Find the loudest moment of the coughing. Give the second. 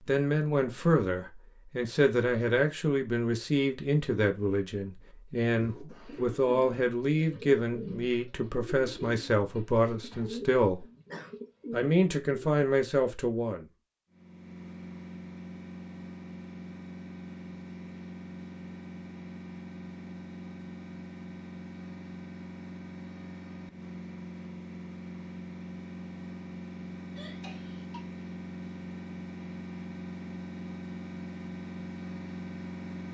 11 s.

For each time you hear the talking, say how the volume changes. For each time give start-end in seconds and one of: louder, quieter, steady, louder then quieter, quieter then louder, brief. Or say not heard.
0.1-10.8 steady
11.7-13.7 brief.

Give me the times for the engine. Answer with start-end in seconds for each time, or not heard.
14.1-33.0.